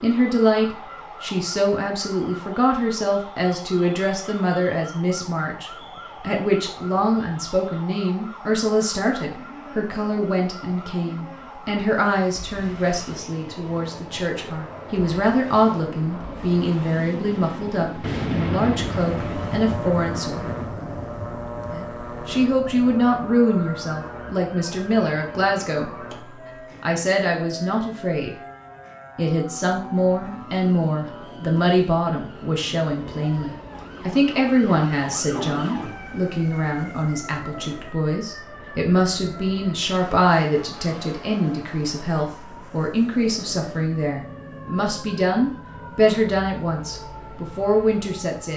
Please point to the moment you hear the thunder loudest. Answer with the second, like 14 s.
18 s.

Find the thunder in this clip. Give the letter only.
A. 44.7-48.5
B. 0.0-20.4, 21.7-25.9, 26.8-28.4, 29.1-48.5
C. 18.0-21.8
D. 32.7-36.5
C.